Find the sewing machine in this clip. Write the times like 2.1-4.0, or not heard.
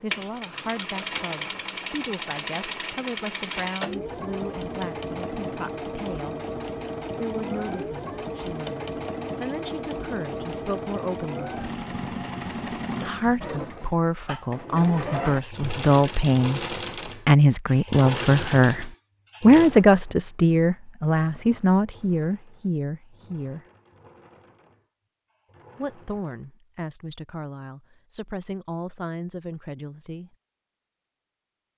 0.0-26.4.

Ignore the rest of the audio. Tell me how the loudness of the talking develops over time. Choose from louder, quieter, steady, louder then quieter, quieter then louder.
louder then quieter.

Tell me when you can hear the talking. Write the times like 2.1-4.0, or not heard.
0.0-6.3, 7.2-11.5, 13.0-23.6, 25.8-30.4.